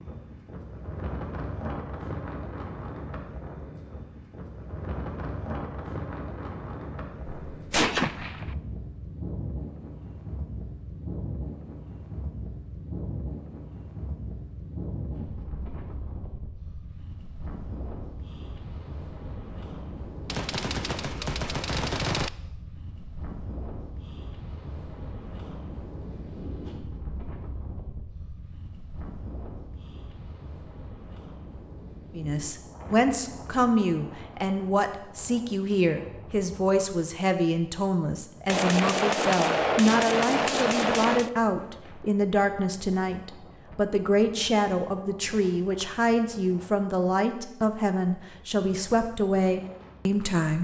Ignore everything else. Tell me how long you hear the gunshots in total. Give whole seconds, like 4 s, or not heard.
6 s.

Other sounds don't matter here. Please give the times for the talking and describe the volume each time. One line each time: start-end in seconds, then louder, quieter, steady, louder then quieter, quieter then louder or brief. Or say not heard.
32.1-50.5 steady.